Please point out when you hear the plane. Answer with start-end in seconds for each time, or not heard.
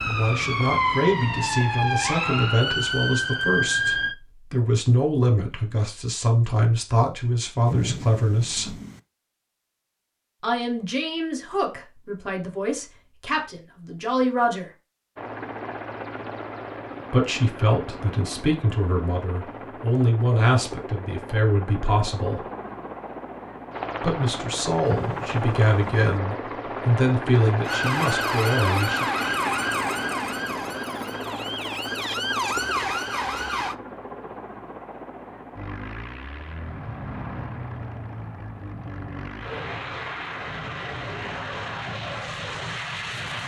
15.2-43.4.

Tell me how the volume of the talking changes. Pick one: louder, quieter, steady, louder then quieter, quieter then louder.
steady.